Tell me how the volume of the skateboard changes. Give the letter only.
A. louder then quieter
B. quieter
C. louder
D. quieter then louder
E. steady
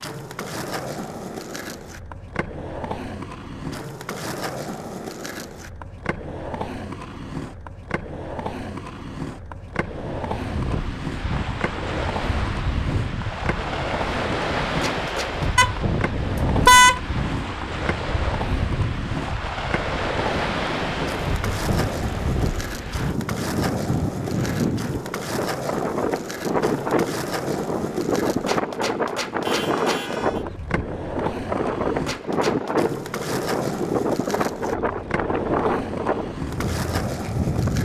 E.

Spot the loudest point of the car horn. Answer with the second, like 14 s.
17 s.